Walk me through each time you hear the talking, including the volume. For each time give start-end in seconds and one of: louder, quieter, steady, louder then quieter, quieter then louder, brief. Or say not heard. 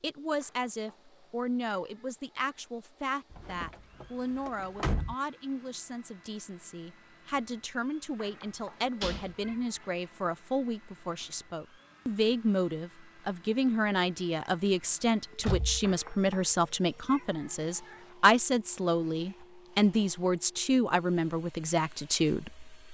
0.0-22.8 louder.